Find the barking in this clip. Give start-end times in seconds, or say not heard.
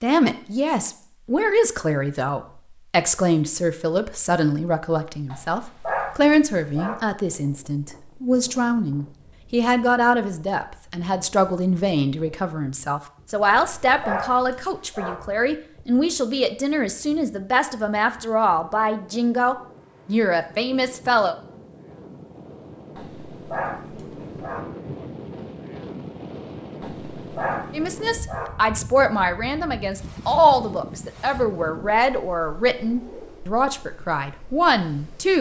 5.3-7.0, 13.4-15.2, 22.9-24.6, 26.8-28.5.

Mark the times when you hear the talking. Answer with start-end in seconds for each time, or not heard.
0.0-21.4, 27.7-35.3.